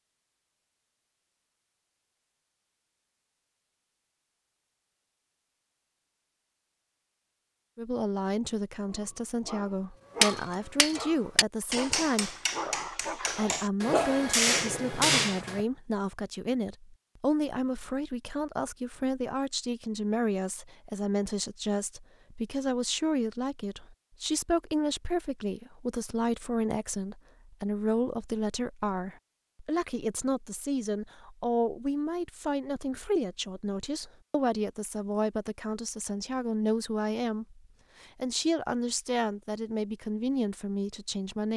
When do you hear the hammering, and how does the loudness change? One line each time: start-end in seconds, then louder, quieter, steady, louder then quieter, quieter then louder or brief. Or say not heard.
10.2-15.6 quieter then louder.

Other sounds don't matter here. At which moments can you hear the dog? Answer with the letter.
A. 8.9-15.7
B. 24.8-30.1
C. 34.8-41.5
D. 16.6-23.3
A.